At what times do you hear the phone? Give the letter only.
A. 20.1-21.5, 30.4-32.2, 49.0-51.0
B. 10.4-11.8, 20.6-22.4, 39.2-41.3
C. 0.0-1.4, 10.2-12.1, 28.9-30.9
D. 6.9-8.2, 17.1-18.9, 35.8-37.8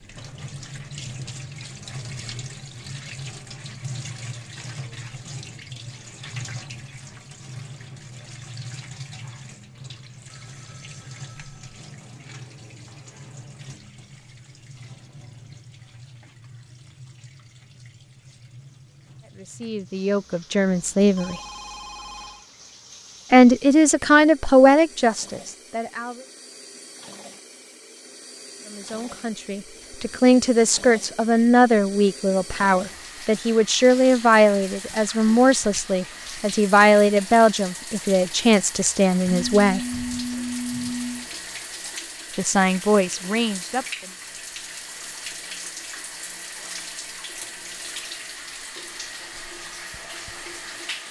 B.